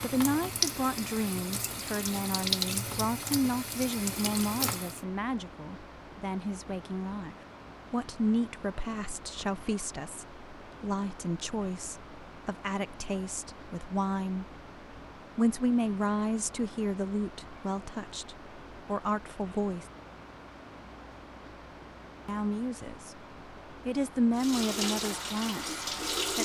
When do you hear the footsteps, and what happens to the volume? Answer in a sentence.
You can't hear the footsteps here.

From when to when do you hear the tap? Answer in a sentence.
You can hear the tap from 0.0 to 5.0 s and from 24.4 to 26.3 s.